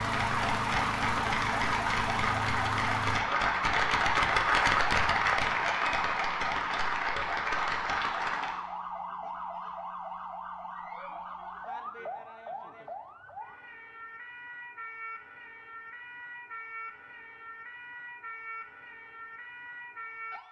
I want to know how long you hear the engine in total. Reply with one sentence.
The engine can be heard for 3 seconds in total.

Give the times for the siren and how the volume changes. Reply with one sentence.
You can hear the siren from 0.1 to 20.4 s, getting quieter.